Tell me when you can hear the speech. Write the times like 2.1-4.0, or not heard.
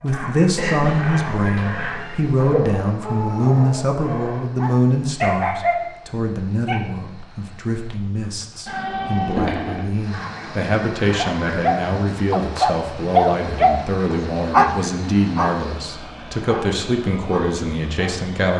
0.0-18.5.